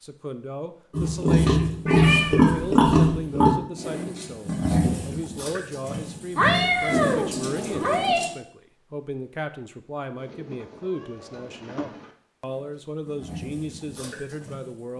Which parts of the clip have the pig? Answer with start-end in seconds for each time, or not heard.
0.9-8.3, 12.4-14.9.